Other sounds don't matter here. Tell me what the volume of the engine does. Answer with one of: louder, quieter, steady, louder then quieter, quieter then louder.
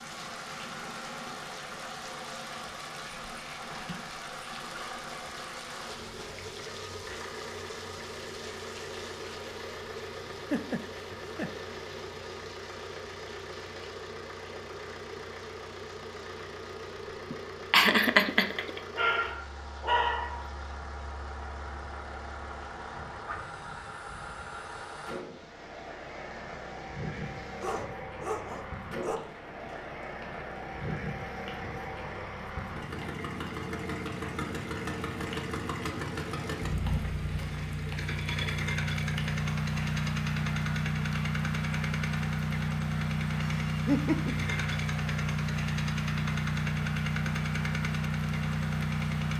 louder.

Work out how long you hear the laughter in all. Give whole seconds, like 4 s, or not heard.
3 s.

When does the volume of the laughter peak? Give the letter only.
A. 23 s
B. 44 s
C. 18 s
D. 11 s
C.